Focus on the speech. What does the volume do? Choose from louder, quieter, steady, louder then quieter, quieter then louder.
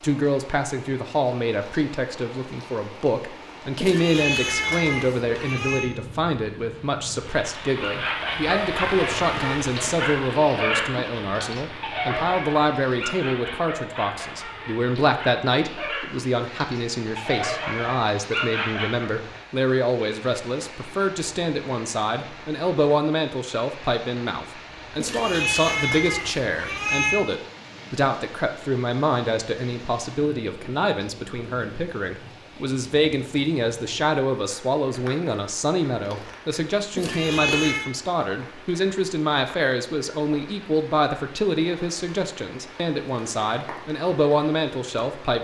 steady.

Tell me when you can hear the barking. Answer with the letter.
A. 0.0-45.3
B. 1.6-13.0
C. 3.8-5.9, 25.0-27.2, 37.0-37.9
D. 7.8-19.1
D.